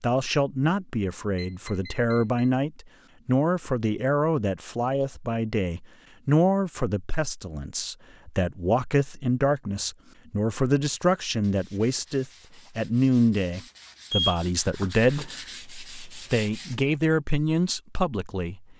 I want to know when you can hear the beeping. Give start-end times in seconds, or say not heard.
1.4-2.5, 14.1-15.3.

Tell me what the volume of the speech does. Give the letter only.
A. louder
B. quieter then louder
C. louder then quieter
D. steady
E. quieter
D.